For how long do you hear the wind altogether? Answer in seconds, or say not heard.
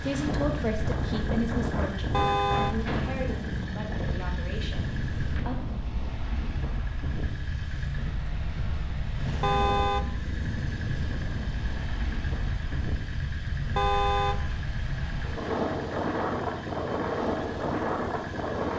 19 s.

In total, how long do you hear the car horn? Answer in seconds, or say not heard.
2 s.